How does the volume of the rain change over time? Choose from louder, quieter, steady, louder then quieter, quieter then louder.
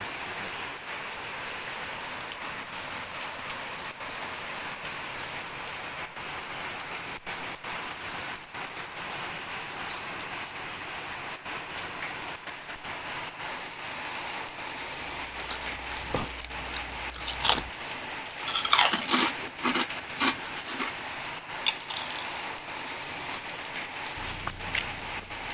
steady.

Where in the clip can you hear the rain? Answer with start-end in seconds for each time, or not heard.
0.0-25.4.